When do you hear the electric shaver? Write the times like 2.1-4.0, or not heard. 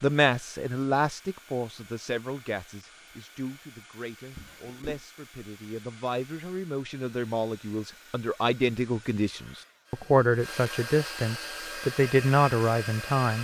not heard.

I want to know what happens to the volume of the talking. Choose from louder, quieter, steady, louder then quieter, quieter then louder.
quieter then louder.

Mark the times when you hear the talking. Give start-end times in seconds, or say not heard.
0.0-13.3.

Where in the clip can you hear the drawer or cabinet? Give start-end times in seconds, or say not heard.
4.3-5.0.